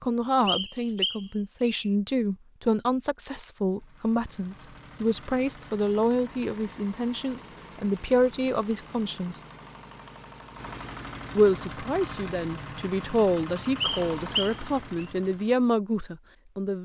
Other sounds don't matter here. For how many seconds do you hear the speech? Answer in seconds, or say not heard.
15 s.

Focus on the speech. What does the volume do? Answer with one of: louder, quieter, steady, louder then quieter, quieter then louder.
steady.